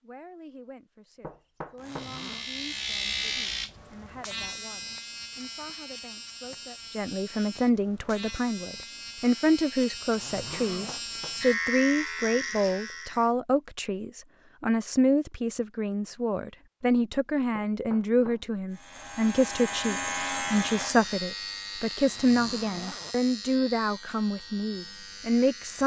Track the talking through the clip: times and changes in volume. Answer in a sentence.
You can hear the talking from 0.0 to 25.8 s, getting louder.